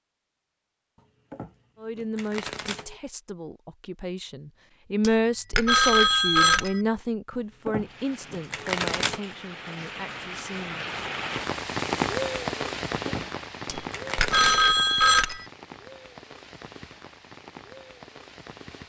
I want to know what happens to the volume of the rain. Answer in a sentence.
The loudness of the rain goes up, then down.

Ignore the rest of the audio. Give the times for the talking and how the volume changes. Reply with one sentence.
You can hear the talking from 1.8 to 10.8 s, getting louder then quieter.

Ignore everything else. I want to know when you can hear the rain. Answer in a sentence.
You can hear the rain from 7.8 to 18.8 s.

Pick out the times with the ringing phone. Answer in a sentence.
The ringing phone can be heard from 5.0 to 6.8 s and from 13.7 to 15.4 s.